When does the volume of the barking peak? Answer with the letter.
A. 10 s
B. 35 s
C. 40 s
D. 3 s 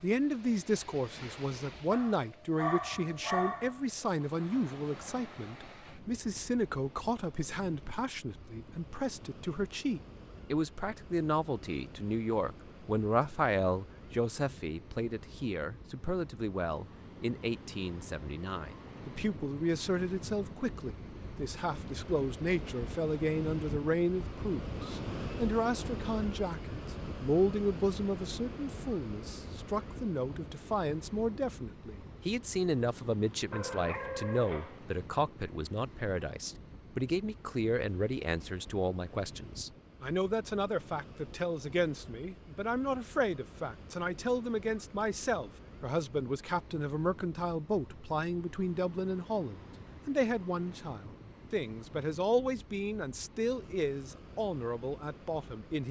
D.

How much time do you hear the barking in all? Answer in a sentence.
The barking can be heard for 3 seconds in total.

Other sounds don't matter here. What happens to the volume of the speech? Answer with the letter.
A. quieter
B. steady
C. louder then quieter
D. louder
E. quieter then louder
B.